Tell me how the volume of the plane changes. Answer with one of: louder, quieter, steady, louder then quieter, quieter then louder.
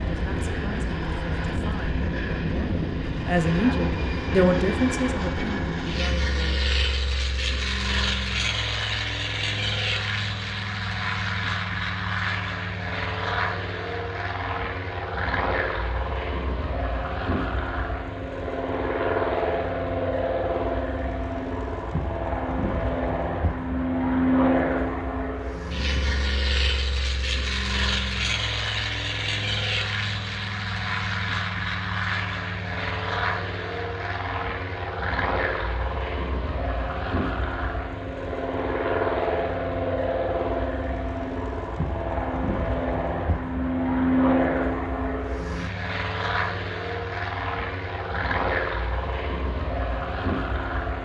steady.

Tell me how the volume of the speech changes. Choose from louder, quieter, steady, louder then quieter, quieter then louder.
louder then quieter.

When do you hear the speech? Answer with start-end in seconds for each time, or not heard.
0.0-6.7.